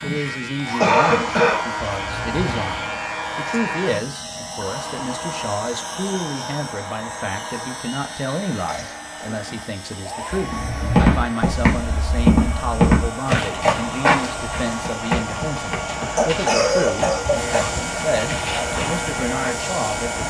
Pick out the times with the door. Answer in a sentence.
You can hear the door from 1.9 to 2.8 s and from 10.4 to 11.3 s.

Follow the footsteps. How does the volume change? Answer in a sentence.
The loudness of the footsteps goes down.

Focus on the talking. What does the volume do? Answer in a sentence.
The loudness of the talking stays about the same.